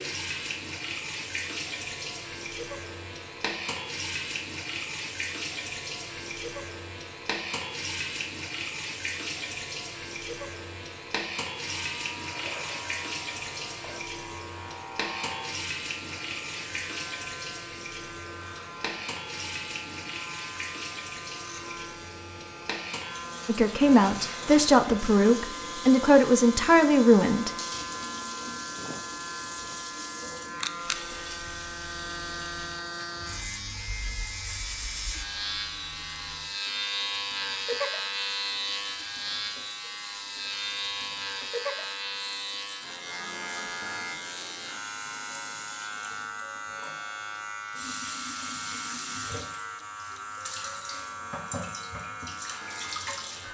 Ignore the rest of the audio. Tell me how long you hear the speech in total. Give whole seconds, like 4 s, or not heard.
4 s.